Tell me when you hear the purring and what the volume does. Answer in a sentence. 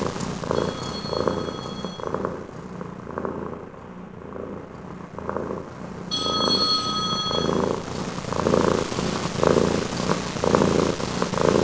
The purring can be heard from 0.0 to 11.5 s, getting quieter then louder.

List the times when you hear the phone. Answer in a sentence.
The phone can be heard from 0.5 to 2.0 s and from 6.1 to 7.5 s.